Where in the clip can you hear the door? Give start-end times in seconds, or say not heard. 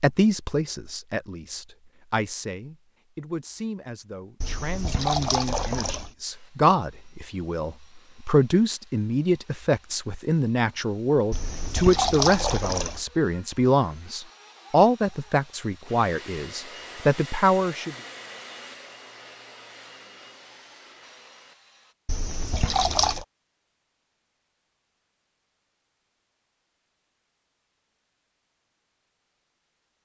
not heard.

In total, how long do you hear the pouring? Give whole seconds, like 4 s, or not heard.
5 s.